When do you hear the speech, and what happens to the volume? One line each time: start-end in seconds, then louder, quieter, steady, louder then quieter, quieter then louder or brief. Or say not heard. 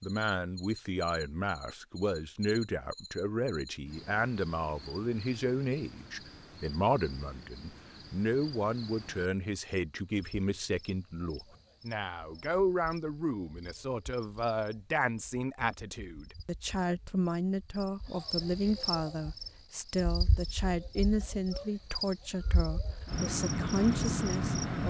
0.0-24.8 steady.